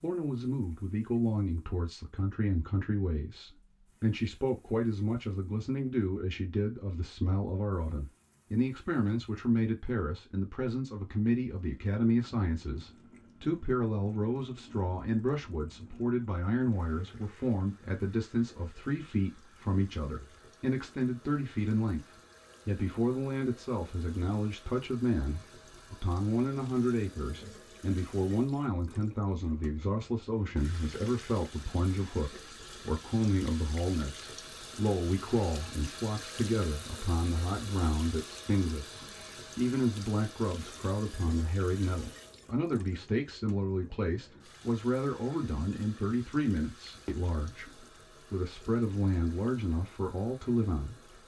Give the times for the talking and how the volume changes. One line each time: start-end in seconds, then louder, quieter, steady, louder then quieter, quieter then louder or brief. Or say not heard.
0.0-22.1 steady
22.6-51.2 steady.